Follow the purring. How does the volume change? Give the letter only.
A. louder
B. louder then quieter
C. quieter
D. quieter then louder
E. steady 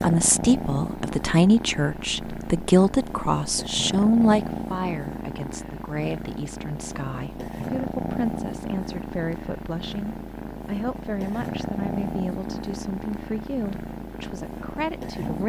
E.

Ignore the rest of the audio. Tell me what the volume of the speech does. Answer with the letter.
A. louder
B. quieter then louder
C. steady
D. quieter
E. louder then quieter
D.